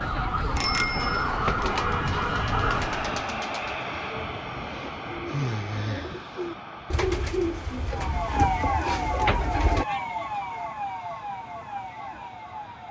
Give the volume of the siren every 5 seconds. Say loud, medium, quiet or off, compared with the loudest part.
loud, loud, medium.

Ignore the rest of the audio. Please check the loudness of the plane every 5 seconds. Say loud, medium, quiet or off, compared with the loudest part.
loud, medium, quiet.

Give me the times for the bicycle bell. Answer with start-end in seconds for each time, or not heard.
0.6-1.2.